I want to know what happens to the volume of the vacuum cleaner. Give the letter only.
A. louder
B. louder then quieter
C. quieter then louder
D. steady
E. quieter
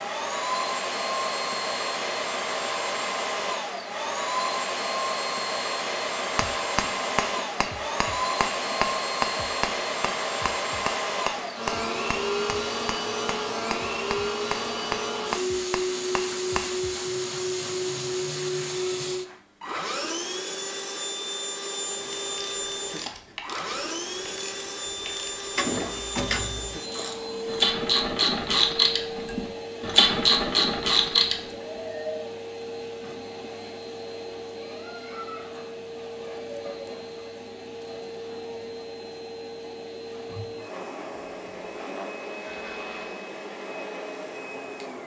E.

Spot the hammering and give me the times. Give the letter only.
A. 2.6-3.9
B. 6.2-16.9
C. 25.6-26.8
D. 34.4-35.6
B.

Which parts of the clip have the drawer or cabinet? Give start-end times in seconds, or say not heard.
25.6-26.8.